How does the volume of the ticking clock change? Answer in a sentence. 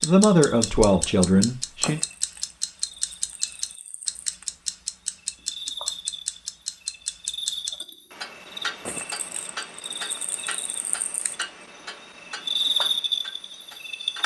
The loudness of the ticking clock goes down.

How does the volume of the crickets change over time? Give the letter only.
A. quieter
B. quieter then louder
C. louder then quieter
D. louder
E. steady
D.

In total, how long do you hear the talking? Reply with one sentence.
The talking can be heard for 2 seconds in total.